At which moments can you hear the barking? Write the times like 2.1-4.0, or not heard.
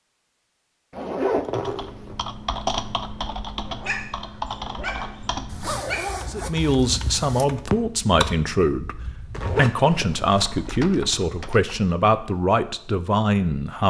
3.6-6.2.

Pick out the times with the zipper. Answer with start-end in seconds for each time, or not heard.
0.9-2.2, 5.5-7.5, 9.3-10.8.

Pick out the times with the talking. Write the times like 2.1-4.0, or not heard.
6.2-13.8.